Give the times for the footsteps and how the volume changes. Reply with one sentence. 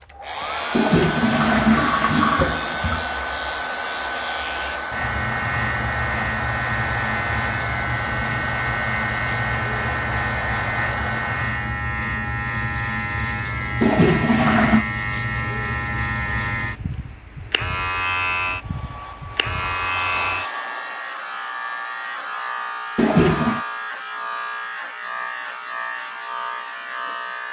The footsteps can't be heard in this clip.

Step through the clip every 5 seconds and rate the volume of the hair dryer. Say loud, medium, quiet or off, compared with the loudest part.
loud, loud, loud, medium, medium, off.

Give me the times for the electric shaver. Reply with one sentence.
You can hear the electric shaver from 0.1 to 27.4 s.